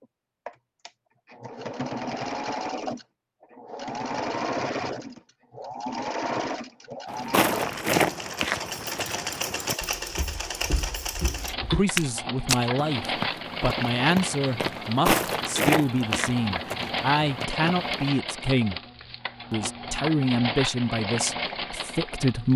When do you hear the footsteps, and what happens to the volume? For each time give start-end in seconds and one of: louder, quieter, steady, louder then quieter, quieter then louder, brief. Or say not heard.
7.0-18.1 quieter then louder.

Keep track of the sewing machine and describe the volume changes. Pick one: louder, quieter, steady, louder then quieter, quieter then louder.
steady.